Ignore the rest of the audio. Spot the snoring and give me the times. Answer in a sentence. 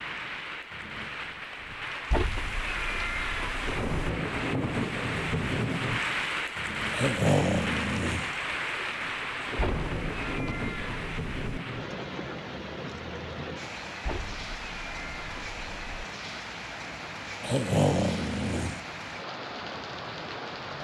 The snoring can be heard from 6.9 to 8.3 s and from 17.4 to 18.8 s.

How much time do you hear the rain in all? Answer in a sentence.
You can hear the rain for 21 seconds altogether.